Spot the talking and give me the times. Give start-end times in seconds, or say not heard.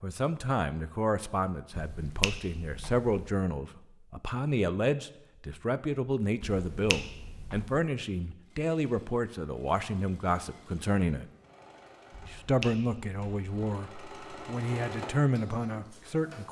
0.0-11.2, 12.2-16.4.